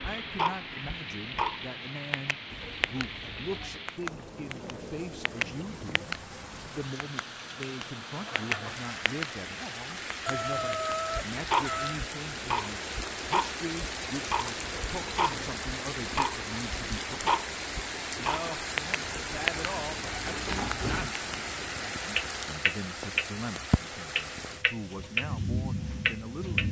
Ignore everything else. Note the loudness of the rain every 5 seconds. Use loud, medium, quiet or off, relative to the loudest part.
medium, medium, loud, loud, loud, loud.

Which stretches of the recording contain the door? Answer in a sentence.
The door can be heard from 2.5 to 3.9 s, from 14.6 to 15.7 s and from 19.0 to 21.1 s.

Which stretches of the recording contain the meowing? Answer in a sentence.
The meowing can be heard from 10.2 to 12.0 s.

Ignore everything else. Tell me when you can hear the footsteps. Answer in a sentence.
The footsteps can't be heard in this clip.